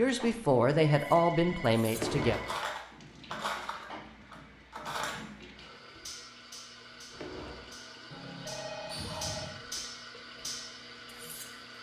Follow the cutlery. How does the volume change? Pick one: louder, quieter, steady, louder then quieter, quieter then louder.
quieter then louder.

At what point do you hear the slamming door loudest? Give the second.
2 s.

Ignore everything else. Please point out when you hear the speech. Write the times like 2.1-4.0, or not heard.
0.0-2.4.